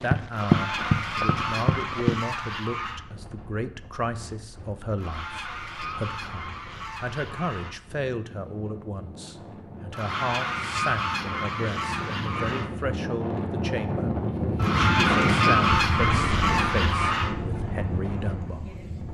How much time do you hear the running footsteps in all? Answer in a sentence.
You can hear the running footsteps for 2 seconds altogether.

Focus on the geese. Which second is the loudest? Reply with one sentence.
The volume of the geese peaks at 16 seconds.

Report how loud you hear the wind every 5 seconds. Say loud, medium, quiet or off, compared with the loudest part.
quiet, quiet, loud, loud.